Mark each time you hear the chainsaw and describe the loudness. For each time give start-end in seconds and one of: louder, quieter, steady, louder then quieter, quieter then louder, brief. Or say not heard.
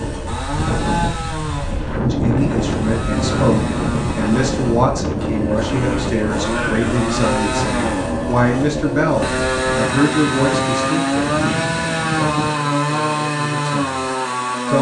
0.0-14.7 louder.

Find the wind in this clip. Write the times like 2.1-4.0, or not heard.
0.0-12.6.